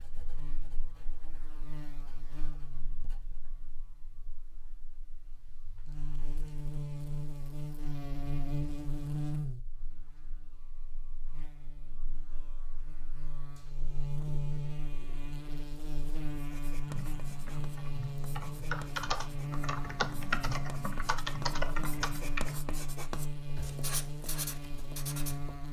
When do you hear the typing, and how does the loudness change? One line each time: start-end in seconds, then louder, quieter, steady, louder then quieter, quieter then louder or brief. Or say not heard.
16.9-22.6 louder.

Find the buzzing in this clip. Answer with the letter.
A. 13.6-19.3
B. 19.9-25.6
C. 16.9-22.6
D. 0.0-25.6
D.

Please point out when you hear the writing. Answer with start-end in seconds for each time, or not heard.
0.0-3.5, 16.3-25.6.